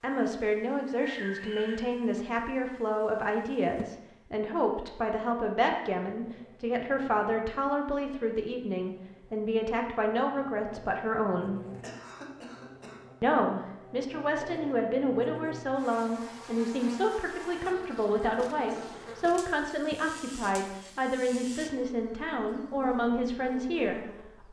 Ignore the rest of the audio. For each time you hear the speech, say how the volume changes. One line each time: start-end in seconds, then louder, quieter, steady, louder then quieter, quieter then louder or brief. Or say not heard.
0.0-11.6 steady
13.2-24.4 steady.